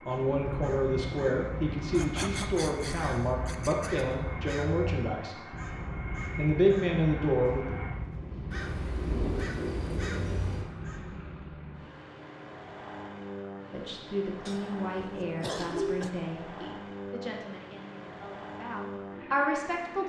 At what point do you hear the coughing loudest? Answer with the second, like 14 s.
16 s.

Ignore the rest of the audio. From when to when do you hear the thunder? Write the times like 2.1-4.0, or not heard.
8.5-10.7.